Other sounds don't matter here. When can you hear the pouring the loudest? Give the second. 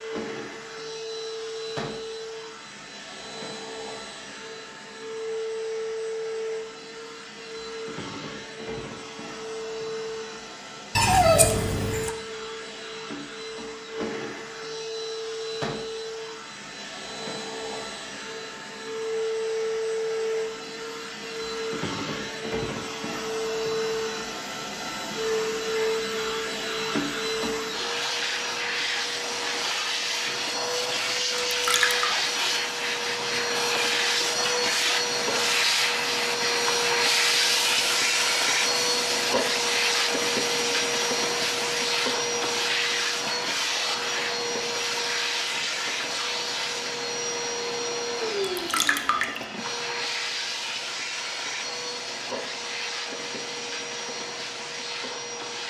11 s.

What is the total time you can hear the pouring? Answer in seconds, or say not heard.
3 s.